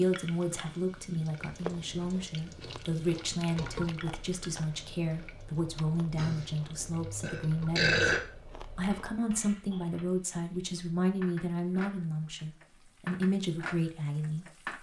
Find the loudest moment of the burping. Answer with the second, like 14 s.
8 s.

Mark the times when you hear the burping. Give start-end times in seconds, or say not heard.
6.2-8.2.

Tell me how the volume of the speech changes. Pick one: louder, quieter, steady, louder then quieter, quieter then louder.
steady.